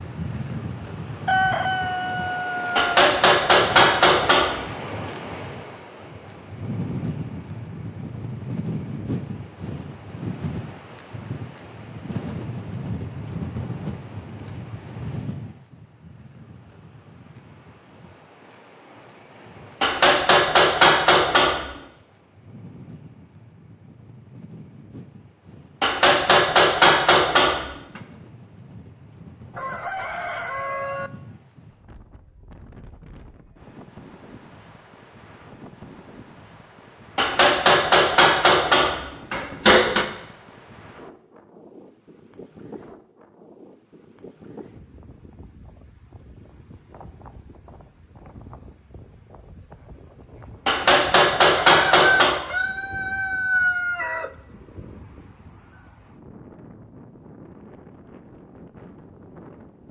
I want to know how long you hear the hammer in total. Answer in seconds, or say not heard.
11 s.